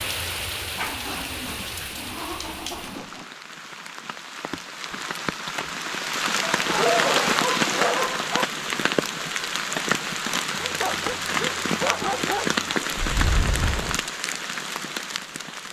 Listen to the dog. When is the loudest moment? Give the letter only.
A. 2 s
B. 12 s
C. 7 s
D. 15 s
C.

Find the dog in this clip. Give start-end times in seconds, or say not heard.
0.8-3.2, 6.5-8.4, 10.6-12.6.